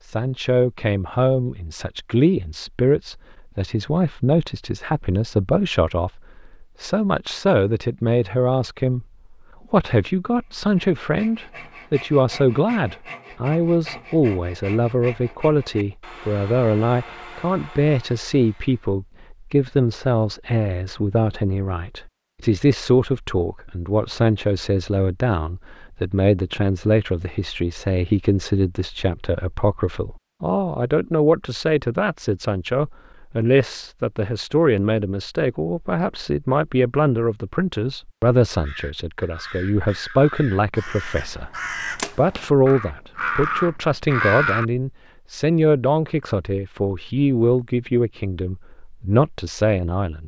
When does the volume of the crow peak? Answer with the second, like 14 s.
44 s.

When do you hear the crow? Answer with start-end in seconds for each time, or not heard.
38.5-44.6.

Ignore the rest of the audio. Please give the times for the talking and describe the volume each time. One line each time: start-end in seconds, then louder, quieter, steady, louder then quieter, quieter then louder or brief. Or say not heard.
0.1-9.1 steady
9.7-50.2 steady.